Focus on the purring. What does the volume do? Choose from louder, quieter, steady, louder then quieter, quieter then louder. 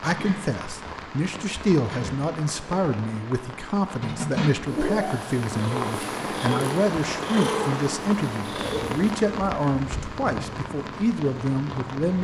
louder then quieter.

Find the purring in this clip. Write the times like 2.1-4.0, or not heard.
4.7-9.2.